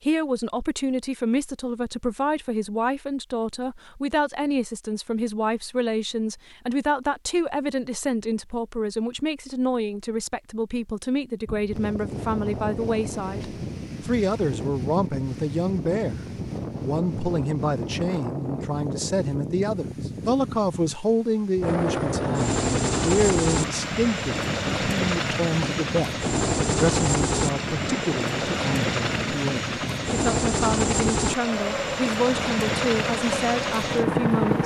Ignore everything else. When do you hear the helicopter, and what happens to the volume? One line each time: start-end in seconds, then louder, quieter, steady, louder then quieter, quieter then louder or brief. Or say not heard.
21.6-34.6 steady.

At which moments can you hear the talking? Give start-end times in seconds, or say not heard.
0.0-16.2, 16.8-34.6.